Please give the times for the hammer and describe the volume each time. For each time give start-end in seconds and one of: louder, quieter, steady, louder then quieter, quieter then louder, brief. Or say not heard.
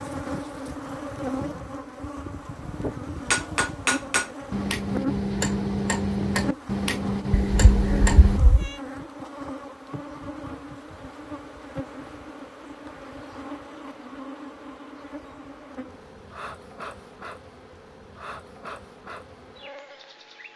3.2-8.4 steady.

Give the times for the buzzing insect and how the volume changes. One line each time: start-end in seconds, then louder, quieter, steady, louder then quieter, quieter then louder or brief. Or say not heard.
0.0-20.5 quieter.